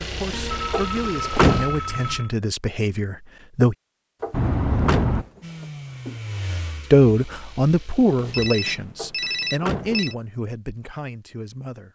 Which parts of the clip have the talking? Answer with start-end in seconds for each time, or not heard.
0.0-3.8, 6.9-11.9.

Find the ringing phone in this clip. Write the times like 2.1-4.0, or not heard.
0.3-2.4, 4.3-5.3, 8.2-10.2.